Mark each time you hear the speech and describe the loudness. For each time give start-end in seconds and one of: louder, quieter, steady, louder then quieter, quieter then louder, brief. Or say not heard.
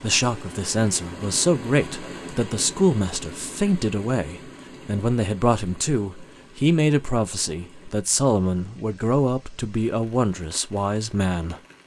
0.0-11.6 steady.